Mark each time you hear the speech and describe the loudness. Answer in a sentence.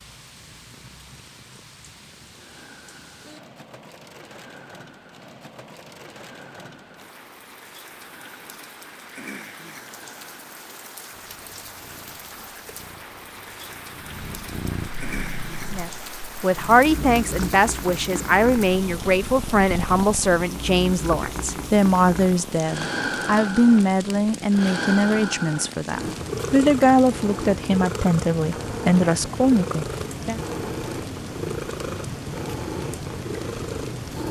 The speech can be heard from 15.7 to 30.4 s, at a steady volume.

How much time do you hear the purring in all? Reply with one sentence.
The purring can be heard for 34 seconds in total.